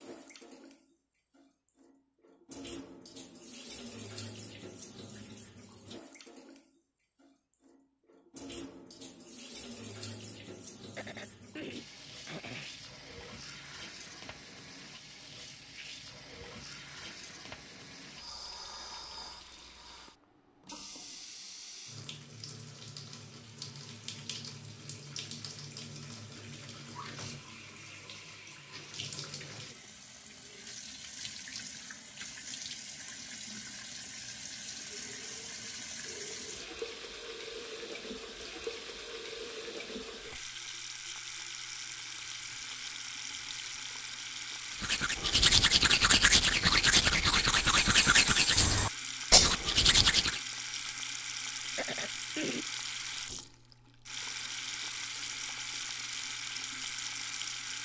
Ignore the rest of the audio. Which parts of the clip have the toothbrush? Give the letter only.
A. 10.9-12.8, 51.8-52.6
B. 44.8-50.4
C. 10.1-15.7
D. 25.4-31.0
B.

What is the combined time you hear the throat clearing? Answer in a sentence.
You can hear the throat clearing for 3 seconds altogether.